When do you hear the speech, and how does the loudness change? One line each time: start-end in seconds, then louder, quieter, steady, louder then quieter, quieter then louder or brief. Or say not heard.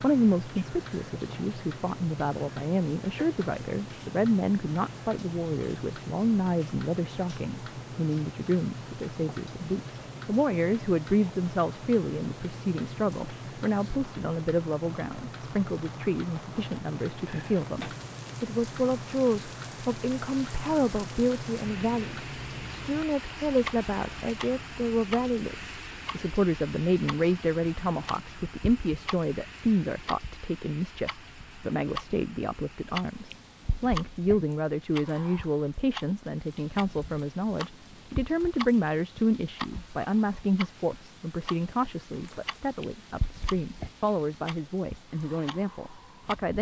0.0-46.5 steady.